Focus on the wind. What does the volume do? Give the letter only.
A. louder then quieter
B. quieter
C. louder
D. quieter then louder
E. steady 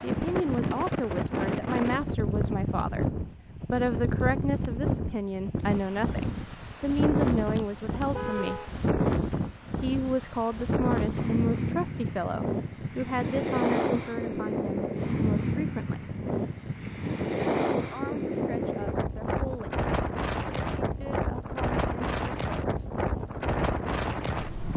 E.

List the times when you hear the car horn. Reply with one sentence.
You can hear the car horn from 7.5 to 8.7 s.